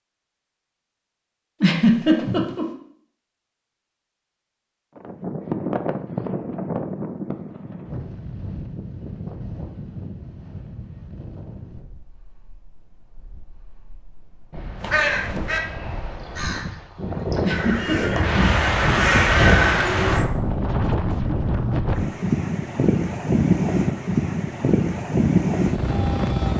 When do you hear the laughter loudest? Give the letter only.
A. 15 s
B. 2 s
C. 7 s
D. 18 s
B.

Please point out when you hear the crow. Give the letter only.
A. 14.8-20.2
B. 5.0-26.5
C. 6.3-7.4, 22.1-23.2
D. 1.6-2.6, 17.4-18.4
A.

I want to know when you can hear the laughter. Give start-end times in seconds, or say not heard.
1.6-2.6, 17.4-18.4.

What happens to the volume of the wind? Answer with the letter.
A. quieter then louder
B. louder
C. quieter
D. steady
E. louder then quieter
A.